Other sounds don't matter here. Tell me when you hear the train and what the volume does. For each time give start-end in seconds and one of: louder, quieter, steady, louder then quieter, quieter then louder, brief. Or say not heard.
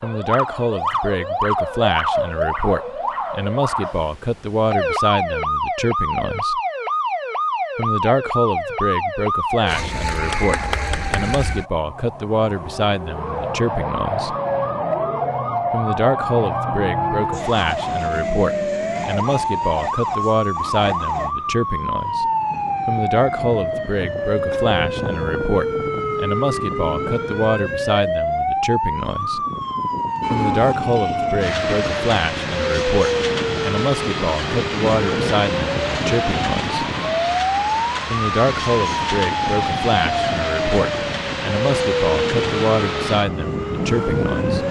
30.2-44.6 steady.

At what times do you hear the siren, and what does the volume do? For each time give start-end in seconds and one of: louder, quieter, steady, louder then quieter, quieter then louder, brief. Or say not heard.
0.0-44.6 steady.